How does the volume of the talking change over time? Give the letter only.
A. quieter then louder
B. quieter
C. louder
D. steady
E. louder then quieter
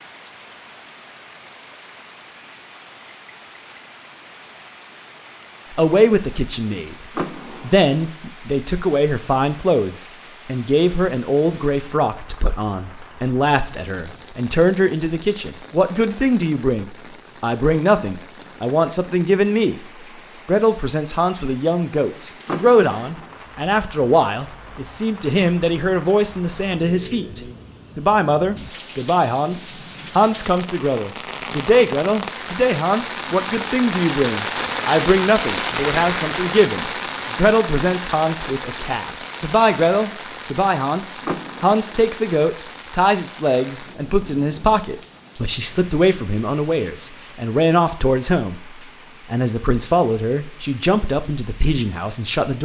D.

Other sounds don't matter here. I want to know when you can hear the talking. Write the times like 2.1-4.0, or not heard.
5.7-19.9, 20.4-52.6.